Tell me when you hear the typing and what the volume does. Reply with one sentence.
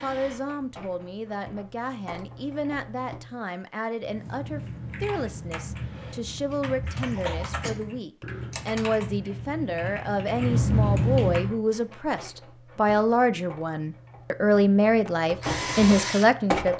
You can hear the typing from 4.0 to 11.6 s, getting louder.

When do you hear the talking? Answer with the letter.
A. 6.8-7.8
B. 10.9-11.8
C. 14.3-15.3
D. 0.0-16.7
D.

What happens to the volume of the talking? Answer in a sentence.
The volume of the talking goes up.